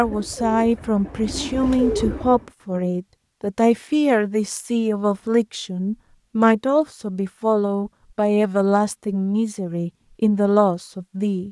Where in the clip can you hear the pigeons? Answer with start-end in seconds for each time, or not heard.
0.0-2.5.